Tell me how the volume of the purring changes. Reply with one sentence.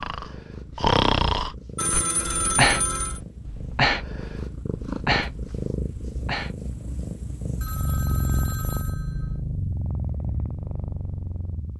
The loudness of the purring goes up.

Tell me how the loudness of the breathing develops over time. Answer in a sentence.
The loudness of the breathing goes down.